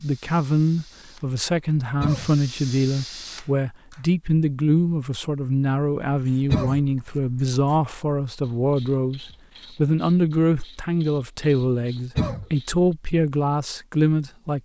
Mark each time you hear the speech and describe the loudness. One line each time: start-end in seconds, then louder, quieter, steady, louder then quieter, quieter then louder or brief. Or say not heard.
0.0-14.6 steady.